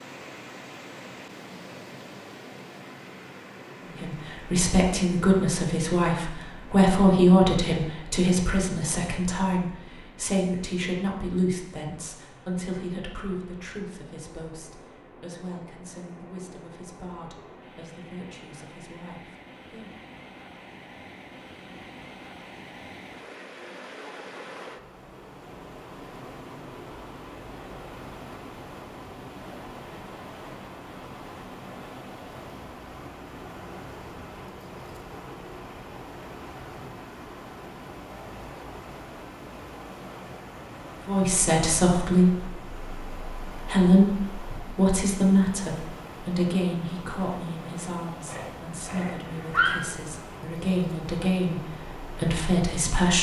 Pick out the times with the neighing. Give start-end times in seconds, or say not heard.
48.2-49.8.